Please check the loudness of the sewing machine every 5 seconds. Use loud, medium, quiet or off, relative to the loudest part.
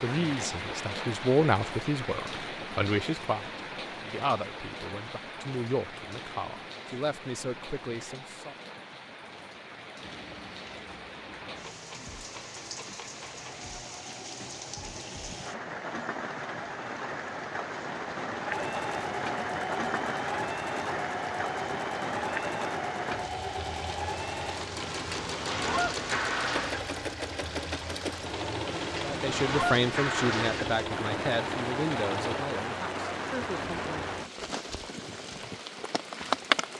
off, off, quiet, loud, loud, loud, loud, off.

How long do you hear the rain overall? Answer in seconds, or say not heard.
37 s.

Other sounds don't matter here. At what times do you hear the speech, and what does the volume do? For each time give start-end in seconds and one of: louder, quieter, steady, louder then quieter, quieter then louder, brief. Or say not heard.
0.0-8.6 quieter
29.0-34.1 quieter.